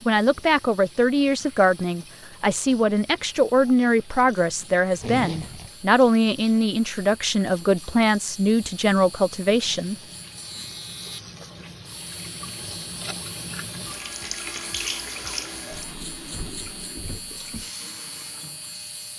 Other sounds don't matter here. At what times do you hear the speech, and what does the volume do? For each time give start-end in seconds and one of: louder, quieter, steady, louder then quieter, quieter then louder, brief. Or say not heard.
0.1-9.9 steady.